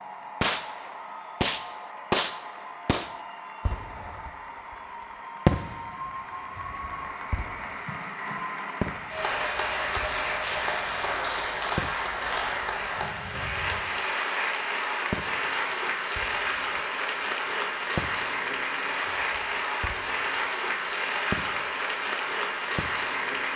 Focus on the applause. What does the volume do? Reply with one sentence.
The loudness of the applause goes up.